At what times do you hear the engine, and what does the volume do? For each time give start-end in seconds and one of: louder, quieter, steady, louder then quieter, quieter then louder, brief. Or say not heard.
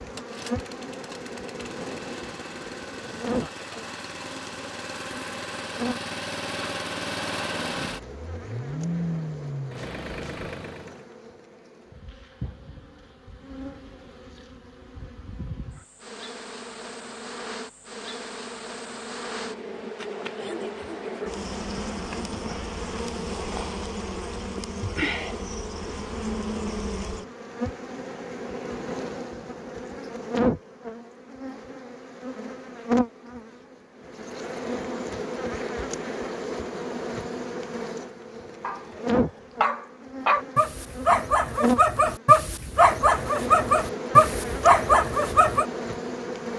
0.0-11.1 louder.